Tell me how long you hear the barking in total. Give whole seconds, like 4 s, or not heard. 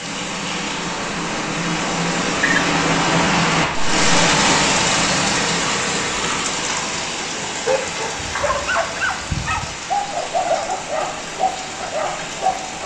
5 s.